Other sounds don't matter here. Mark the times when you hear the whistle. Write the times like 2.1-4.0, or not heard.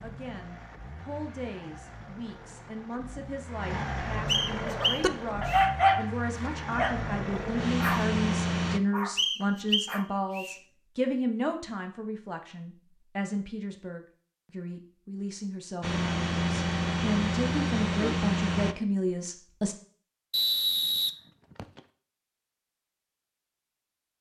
4.2-5.7, 9.2-10.6, 20.3-21.8.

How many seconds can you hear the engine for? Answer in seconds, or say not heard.
12 s.